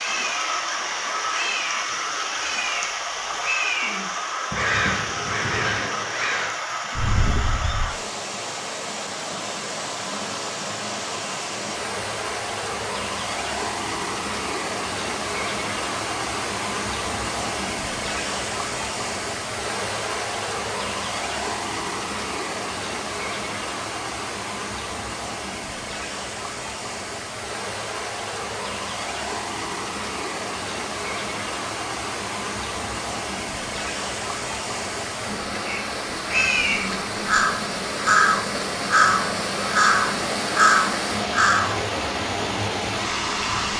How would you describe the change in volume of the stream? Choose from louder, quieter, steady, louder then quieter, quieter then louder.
steady.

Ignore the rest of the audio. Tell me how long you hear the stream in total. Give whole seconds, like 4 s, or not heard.
44 s.